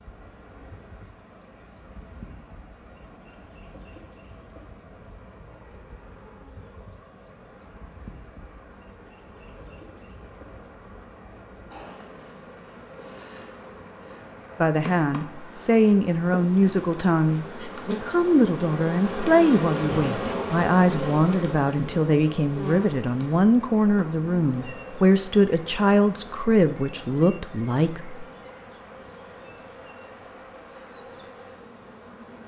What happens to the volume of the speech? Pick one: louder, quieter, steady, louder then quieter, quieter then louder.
steady.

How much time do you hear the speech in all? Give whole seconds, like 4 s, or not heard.
14 s.